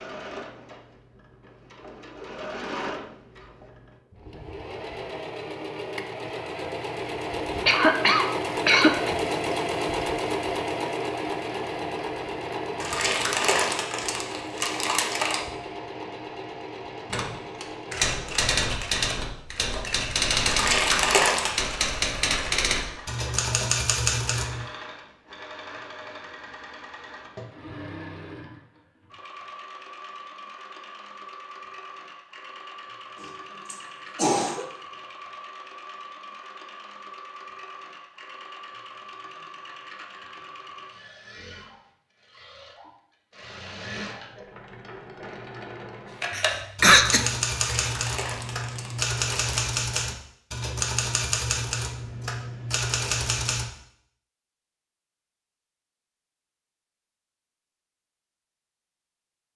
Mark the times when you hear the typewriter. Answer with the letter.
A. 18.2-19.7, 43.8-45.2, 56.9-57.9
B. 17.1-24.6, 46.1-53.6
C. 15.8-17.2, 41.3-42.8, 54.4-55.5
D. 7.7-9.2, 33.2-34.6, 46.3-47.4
B.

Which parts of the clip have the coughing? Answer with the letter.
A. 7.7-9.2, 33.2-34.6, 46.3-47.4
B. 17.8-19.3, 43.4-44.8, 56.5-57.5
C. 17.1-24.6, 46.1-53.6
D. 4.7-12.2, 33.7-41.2
A.